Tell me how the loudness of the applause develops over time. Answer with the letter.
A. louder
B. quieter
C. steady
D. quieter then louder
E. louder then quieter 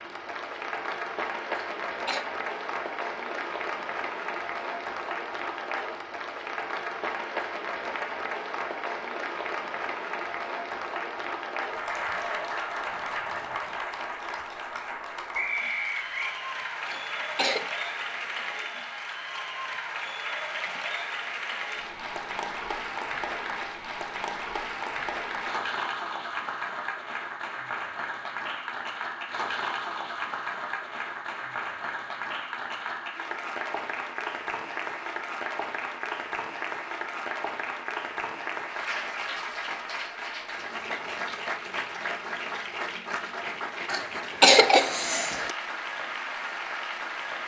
C.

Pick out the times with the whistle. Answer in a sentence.
You can hear the whistle from 15.3 to 16.4 s.